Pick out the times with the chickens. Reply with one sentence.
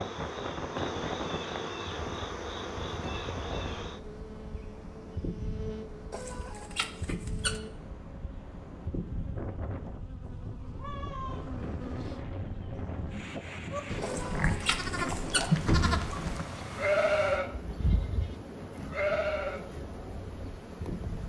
The chickens can be heard from 6.1 to 7.6 s and from 14.0 to 15.5 s.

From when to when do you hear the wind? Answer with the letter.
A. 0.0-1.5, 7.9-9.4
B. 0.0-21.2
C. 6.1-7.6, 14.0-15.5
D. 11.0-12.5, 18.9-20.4
B.